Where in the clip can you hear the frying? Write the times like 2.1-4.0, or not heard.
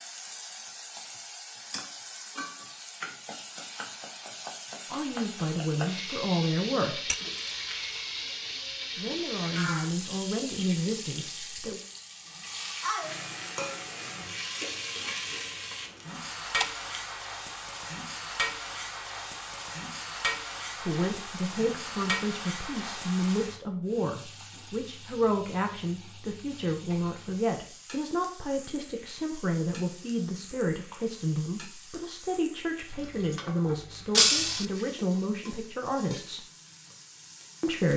0.0-37.9.